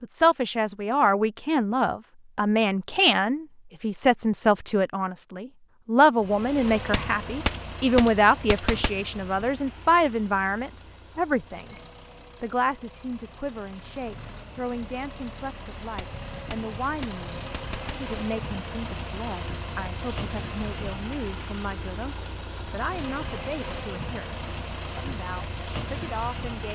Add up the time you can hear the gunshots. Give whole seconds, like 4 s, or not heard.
4 s.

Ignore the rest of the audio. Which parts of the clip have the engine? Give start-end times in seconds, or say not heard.
6.2-26.7.